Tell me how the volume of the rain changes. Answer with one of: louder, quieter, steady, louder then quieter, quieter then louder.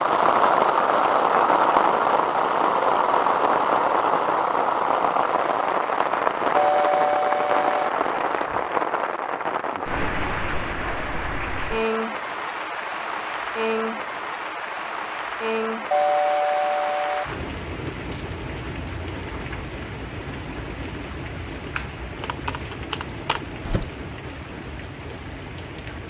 quieter.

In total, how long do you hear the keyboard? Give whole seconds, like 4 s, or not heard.
2 s.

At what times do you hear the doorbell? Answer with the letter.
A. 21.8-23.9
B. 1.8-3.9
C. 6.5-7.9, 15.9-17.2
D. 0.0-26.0
C.